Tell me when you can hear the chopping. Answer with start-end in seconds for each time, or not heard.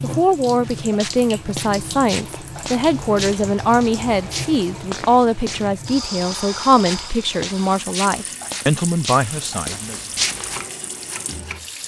10.2-11.6.